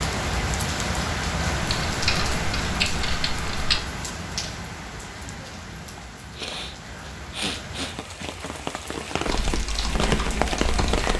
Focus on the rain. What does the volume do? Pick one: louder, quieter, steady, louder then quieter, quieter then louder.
quieter then louder.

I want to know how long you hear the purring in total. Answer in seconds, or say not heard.
not heard.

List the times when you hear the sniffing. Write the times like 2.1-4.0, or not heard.
6.3-8.2.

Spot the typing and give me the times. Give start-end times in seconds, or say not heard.
1.6-3.8, 9.2-11.1.